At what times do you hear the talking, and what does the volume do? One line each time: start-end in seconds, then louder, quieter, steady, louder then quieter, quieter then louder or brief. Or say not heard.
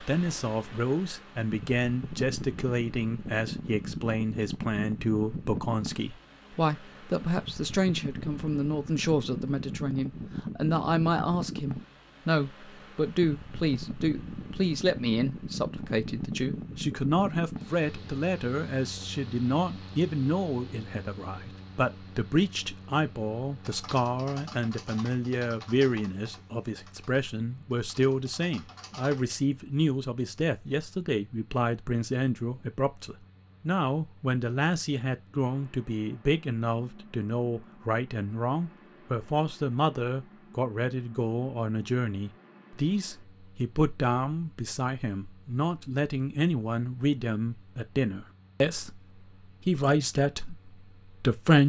0.0-51.6 steady.